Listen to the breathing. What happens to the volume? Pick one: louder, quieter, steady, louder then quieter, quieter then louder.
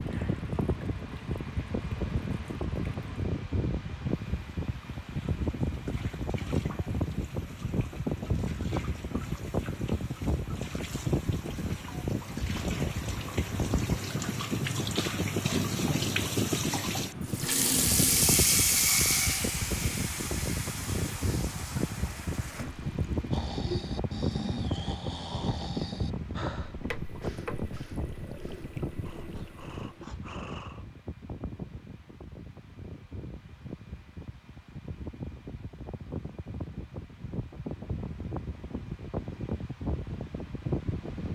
quieter then louder.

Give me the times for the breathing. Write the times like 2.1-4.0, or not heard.
23.3-30.9.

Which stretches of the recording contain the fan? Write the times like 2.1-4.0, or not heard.
0.0-41.2.